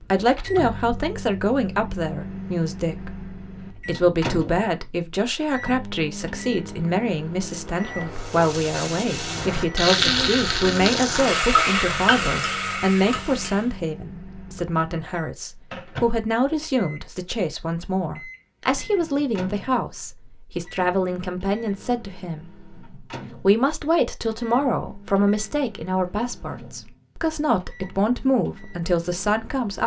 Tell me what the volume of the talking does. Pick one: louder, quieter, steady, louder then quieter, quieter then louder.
steady.